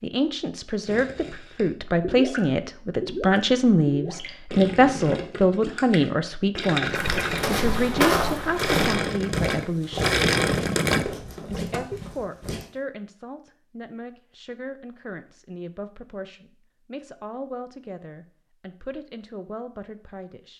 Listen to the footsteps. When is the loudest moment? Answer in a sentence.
The loudest moment of the footsteps is at 8 seconds.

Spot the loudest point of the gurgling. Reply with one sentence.
The volume of the gurgling peaks at 10 seconds.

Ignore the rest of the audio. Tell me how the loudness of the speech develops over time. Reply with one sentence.
The volume of the speech goes down.